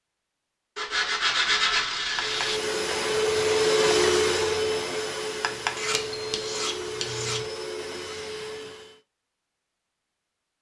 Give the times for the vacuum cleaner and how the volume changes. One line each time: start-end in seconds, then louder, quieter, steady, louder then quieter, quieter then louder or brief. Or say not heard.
2.1-9.0 quieter.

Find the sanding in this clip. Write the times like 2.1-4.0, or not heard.
0.8-2.5, 5.8-7.4.